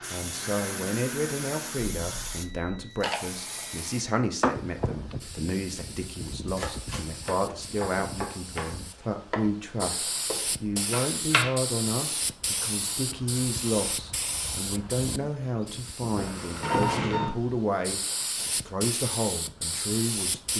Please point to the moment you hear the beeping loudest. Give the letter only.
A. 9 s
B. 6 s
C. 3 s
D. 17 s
D.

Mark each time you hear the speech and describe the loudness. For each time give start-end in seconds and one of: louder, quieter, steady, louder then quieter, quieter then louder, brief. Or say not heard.
0.1-20.5 steady.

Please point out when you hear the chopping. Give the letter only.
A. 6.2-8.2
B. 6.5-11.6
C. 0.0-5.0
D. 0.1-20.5
B.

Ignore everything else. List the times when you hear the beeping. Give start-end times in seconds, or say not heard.
1.8-3.8, 16.1-17.4.